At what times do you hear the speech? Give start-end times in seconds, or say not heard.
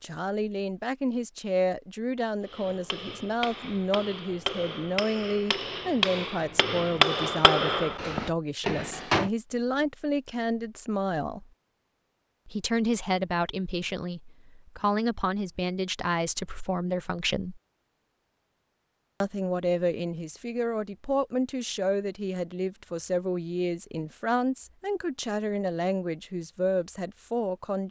0.0-11.4, 12.4-17.6, 19.2-27.8.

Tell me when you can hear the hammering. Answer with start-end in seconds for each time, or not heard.
2.5-9.3.